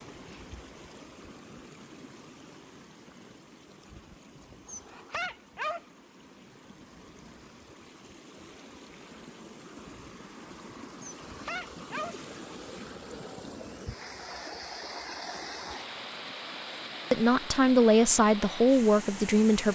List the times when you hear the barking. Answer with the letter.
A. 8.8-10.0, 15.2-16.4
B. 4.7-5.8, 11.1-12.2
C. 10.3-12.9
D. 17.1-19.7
B.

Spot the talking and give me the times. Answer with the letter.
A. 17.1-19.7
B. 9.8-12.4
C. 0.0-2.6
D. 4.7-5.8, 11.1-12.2
A.